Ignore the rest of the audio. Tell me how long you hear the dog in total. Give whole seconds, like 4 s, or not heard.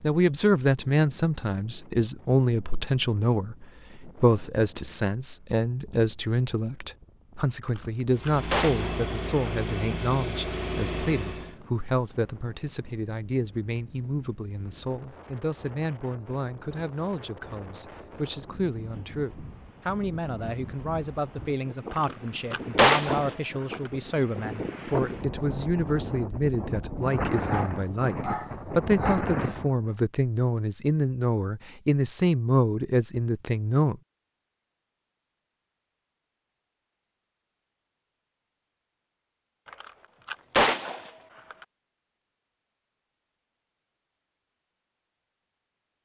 2 s.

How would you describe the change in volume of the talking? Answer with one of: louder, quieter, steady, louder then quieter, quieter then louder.
quieter then louder.